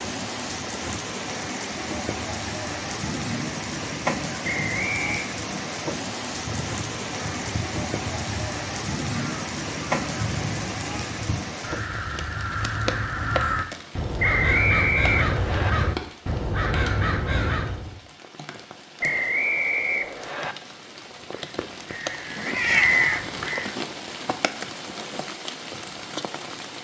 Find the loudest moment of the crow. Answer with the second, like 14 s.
23 s.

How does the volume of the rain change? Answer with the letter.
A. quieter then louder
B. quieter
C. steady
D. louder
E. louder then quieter
A.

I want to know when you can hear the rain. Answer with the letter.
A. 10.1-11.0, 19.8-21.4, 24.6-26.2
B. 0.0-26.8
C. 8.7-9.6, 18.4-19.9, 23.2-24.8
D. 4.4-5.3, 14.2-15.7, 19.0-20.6
B.